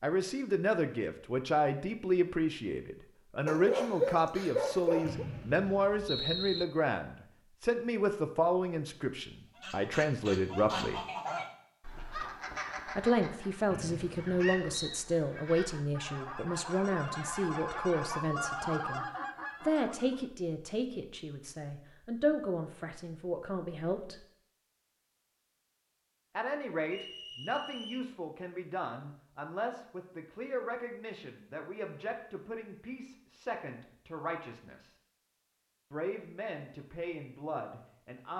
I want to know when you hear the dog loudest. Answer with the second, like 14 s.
4 s.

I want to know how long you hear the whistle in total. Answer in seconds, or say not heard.
4 s.